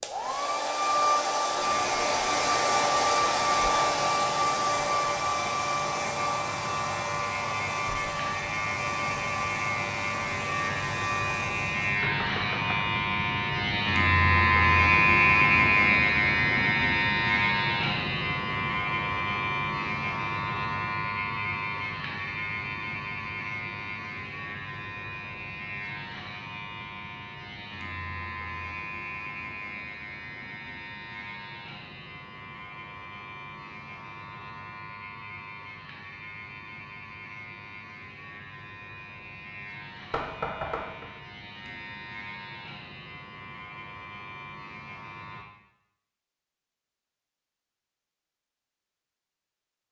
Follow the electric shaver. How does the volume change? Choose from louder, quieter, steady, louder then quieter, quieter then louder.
louder then quieter.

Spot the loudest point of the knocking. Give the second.
41 s.